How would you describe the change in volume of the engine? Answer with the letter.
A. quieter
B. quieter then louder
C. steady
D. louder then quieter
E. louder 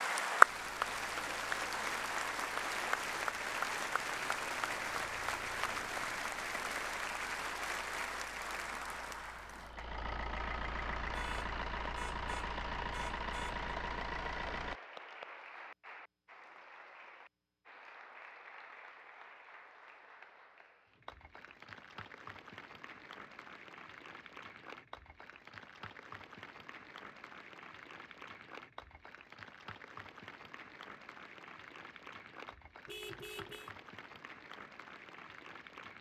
E.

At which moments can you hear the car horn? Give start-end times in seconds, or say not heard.
11.1-13.6, 32.9-33.8.